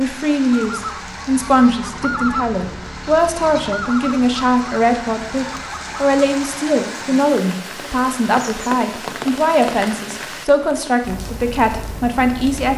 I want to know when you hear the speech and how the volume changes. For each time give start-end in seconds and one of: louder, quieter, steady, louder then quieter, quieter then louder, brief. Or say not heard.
0.0-12.7 steady.